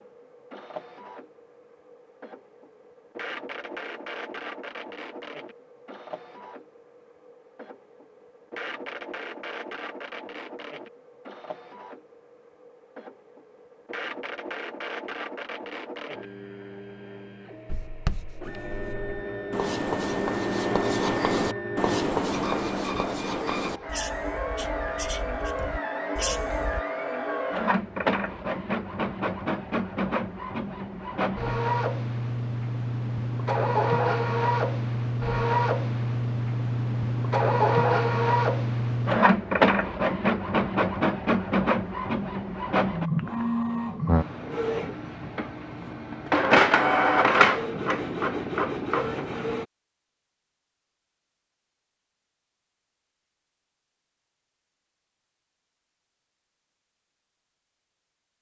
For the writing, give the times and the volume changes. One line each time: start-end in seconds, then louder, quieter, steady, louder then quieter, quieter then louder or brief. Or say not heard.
17.7-26.8 louder then quieter.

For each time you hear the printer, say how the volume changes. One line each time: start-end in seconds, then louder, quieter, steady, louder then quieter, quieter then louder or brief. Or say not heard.
0.0-49.6 louder.